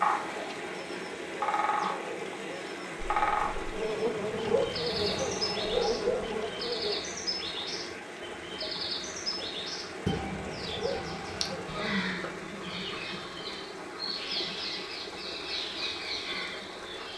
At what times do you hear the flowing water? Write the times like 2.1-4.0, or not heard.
0.0-17.1.